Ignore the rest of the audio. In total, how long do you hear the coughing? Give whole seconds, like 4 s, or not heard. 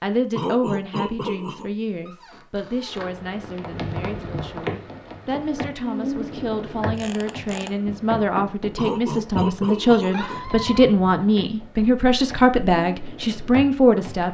3 s.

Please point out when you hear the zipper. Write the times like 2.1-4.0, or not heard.
not heard.